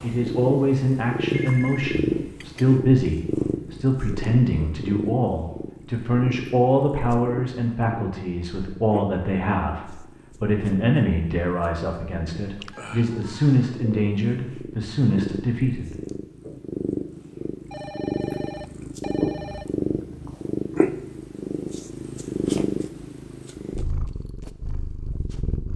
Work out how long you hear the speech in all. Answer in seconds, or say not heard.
16 s.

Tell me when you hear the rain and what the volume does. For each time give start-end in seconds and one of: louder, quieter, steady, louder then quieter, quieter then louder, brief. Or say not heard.
not heard.